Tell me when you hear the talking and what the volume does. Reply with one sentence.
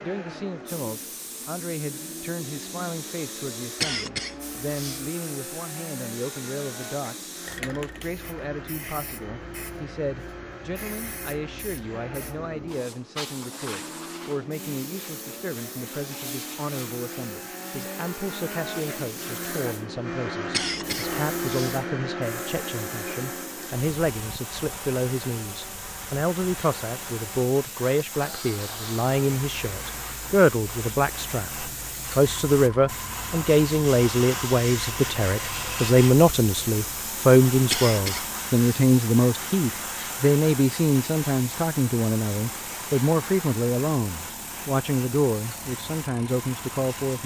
The talking can be heard from 0.0 to 47.2 s, getting louder.